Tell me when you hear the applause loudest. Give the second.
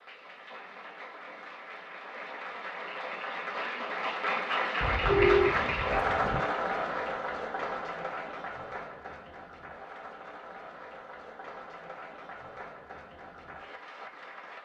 6 s.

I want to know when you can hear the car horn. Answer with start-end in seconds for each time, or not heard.
4.8-6.5.